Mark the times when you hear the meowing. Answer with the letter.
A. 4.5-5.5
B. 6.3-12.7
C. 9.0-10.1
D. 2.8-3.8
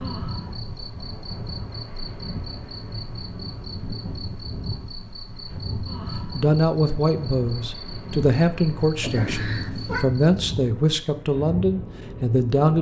C.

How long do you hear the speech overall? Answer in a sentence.
You can hear the speech for 6 seconds altogether.